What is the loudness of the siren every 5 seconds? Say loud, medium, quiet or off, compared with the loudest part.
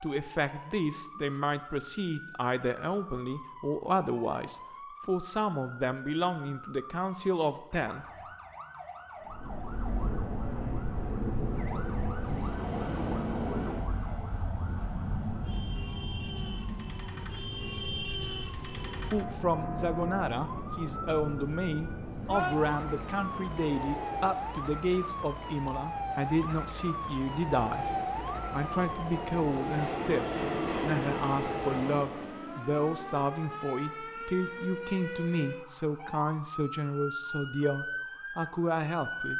medium, medium, medium, loud, loud, loud, loud, loud.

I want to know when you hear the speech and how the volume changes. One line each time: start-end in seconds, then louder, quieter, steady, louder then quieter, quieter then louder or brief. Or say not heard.
0.0-8.1 steady
18.6-39.3 steady.